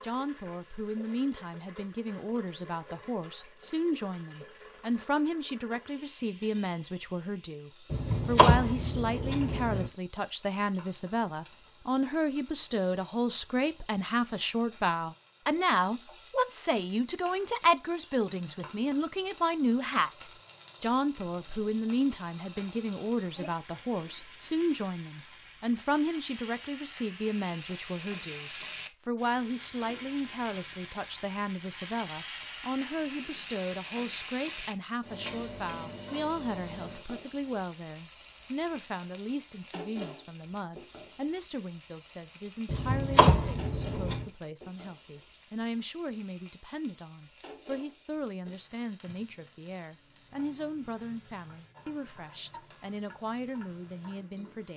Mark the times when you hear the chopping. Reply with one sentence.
The chopping can be heard from 7.9 to 9.9 s and from 42.7 to 44.2 s.